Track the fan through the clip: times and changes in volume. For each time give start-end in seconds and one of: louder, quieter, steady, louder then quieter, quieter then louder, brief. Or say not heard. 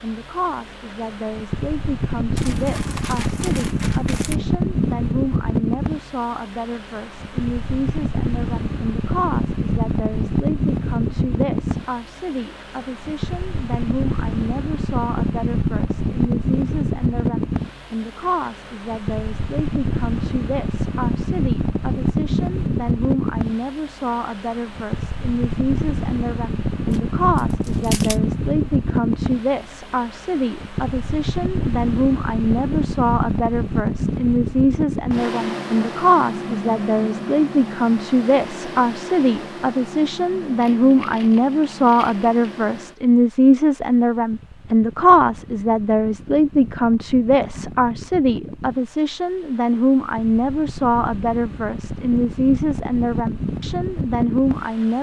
0.0-54.9 quieter.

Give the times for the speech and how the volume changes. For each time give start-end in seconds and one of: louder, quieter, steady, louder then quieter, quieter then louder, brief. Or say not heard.
0.0-54.9 louder.